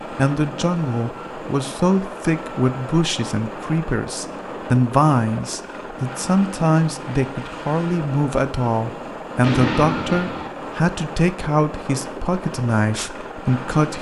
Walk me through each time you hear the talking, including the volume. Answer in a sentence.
The talking can be heard from 0.1 to 13.9 s, at a steady volume.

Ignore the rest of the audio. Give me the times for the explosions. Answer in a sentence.
The explosions can be heard from 9.4 to 10.5 s.